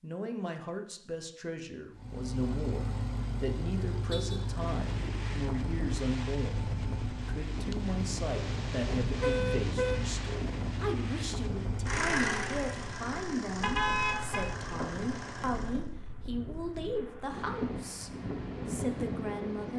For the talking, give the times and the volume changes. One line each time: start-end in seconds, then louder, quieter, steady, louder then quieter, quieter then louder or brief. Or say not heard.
0.0-19.7 steady.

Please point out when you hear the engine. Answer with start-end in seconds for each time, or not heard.
1.9-15.9.